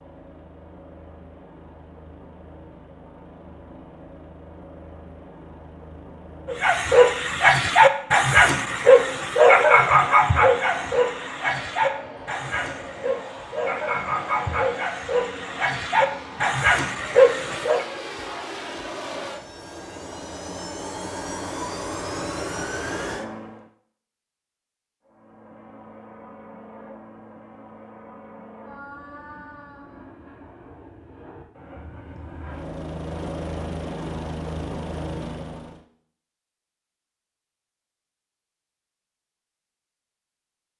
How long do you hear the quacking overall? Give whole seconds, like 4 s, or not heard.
not heard.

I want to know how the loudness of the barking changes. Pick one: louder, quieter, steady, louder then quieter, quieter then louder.
quieter then louder.